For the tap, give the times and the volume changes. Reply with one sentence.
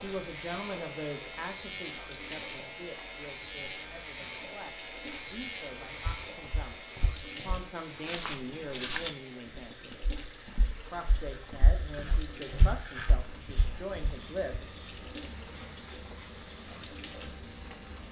The tap can be heard from 0.0 to 18.0 s, at a steady volume.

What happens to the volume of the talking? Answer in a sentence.
The volume of the talking goes down, then up.